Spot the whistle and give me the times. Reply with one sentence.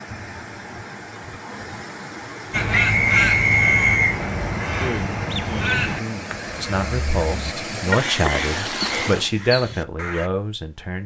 You can hear the whistle from 2.7 to 4.2 s.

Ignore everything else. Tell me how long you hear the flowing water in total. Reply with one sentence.
The flowing water can be heard for 9 seconds in total.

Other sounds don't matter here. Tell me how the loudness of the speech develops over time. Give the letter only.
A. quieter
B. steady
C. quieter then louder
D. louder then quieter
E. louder
E.